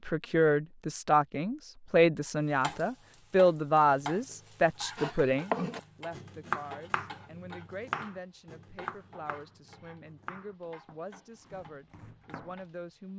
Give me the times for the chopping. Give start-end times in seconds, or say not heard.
5.0-12.7.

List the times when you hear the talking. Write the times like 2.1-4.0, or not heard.
0.0-13.1.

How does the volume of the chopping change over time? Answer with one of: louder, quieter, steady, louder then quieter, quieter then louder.
quieter.